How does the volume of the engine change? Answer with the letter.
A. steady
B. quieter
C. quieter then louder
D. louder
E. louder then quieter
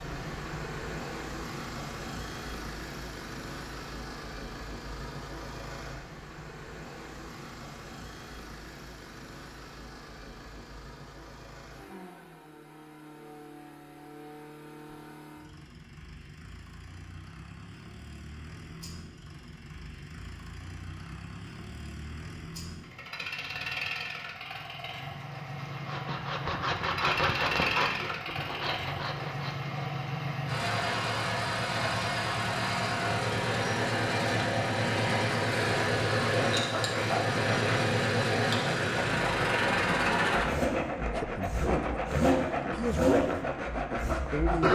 C.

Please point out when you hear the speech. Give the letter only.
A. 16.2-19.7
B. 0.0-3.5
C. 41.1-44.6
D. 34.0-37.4
C.